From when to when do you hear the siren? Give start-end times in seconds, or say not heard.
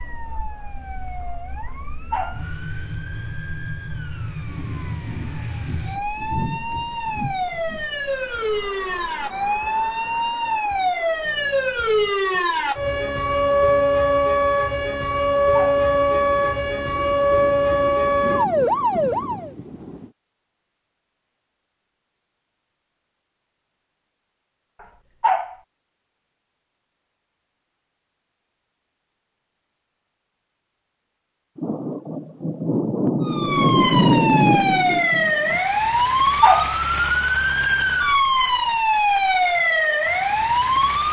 0.0-19.5, 33.2-41.0.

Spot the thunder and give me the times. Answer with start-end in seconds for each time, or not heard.
4.5-7.8, 15.8-20.1, 31.6-35.6.